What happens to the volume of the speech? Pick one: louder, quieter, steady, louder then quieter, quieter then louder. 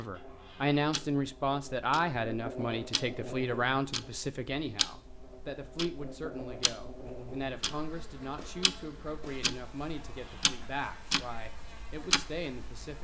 quieter.